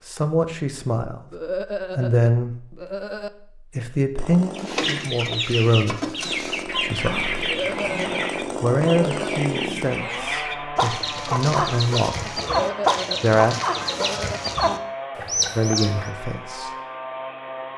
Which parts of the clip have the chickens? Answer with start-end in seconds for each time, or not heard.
4.5-16.1.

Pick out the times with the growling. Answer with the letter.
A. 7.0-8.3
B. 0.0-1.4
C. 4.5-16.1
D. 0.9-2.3
A.